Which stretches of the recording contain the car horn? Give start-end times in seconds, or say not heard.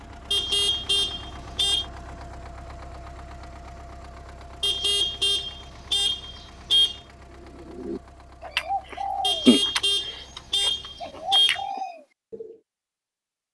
0.3-1.9, 4.6-7.0, 9.2-11.7.